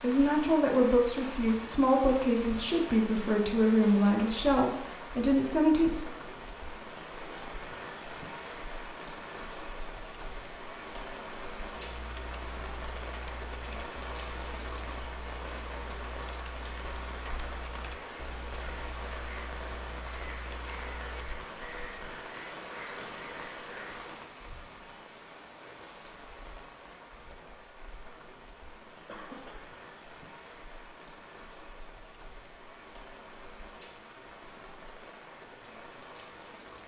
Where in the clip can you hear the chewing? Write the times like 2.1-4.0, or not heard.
not heard.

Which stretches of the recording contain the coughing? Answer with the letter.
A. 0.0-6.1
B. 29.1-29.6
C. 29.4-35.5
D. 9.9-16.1
B.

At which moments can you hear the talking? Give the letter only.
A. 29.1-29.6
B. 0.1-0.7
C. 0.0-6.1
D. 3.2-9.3
C.